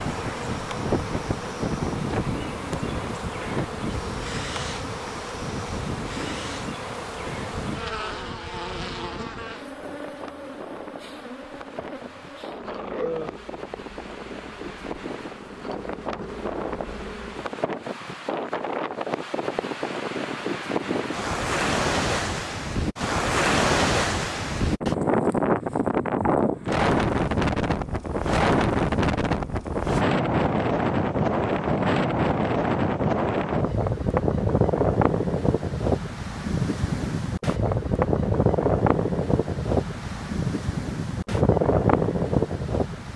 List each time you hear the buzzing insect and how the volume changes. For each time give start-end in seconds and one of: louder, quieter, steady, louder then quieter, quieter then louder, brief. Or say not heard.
0.0-17.6 quieter.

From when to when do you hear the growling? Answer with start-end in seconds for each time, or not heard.
12.6-13.3.